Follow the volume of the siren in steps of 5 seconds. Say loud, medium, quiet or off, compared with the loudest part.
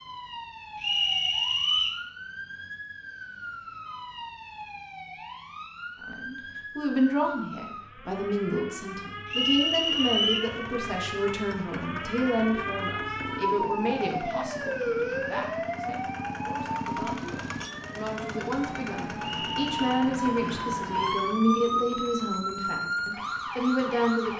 medium, medium, loud, loud, loud.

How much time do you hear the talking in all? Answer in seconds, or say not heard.
18 s.